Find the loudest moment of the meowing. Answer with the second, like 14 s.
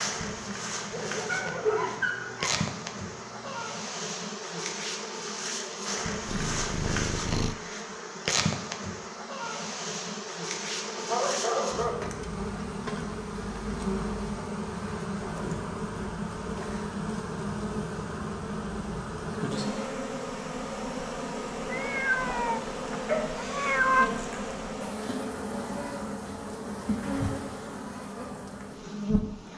24 s.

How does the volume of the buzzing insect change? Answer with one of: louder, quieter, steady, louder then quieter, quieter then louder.
steady.